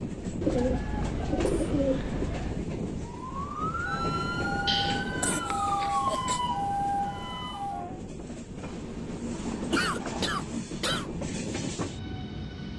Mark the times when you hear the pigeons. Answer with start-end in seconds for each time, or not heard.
0.4-2.6, 4.7-6.2, 8.7-10.3.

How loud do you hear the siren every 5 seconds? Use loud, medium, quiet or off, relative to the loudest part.
loud, loud, off.